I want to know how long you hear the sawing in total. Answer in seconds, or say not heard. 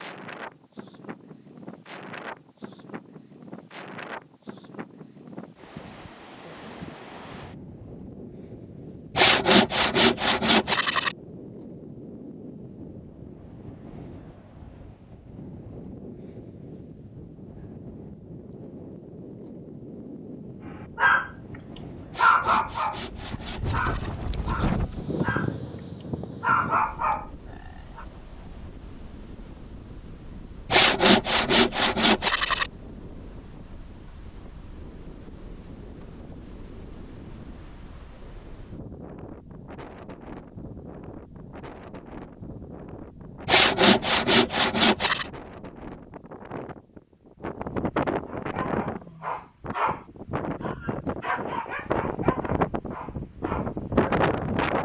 8 s.